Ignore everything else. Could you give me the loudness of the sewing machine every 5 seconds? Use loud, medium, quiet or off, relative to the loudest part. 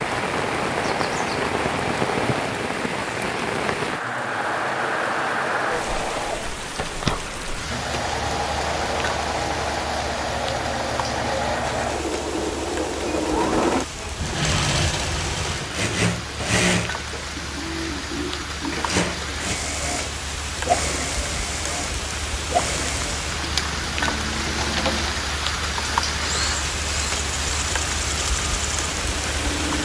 medium, loud, loud, loud, loud, medium.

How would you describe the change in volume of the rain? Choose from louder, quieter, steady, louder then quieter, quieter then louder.
quieter then louder.